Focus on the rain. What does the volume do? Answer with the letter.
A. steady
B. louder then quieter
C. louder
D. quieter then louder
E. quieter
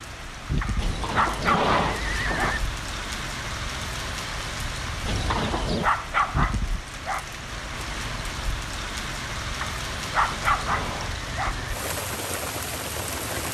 A.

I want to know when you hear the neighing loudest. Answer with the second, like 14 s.
2 s.